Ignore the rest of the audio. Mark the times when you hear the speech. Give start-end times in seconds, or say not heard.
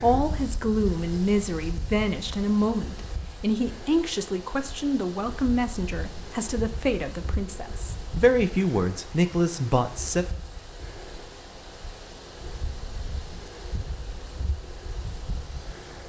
0.0-10.2.